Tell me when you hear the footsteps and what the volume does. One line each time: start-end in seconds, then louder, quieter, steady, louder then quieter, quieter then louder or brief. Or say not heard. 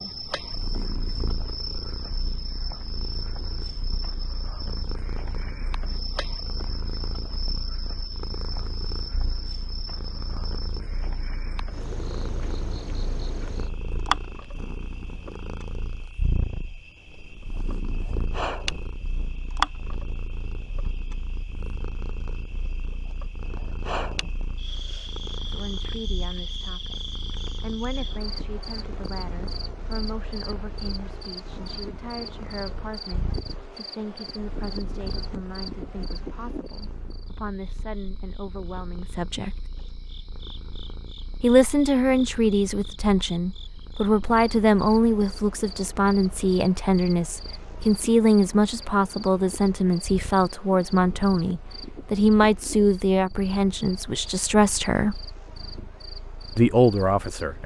not heard.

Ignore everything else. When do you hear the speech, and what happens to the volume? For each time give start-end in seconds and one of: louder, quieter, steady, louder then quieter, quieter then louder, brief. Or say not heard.
25.4-39.6 steady
41.4-55.2 steady
56.5-57.6 brief.